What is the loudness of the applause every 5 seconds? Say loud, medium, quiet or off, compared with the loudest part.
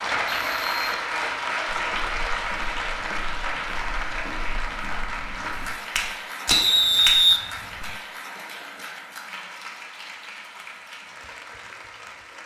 loud, medium, quiet.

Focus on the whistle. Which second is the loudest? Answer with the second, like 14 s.
7 s.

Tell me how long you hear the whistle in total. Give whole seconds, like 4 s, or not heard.
2 s.